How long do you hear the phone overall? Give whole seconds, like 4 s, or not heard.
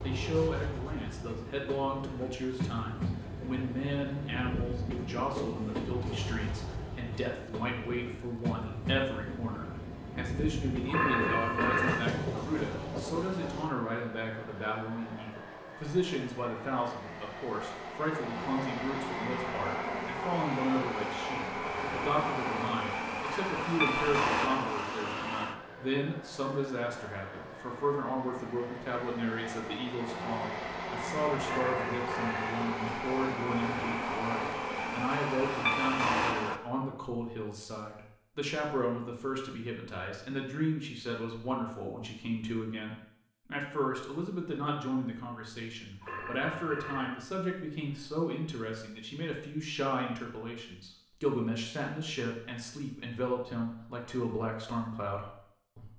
3 s.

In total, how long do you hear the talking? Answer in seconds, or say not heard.
56 s.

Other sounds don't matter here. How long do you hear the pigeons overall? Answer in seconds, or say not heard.
not heard.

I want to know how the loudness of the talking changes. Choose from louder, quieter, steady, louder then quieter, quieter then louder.
steady.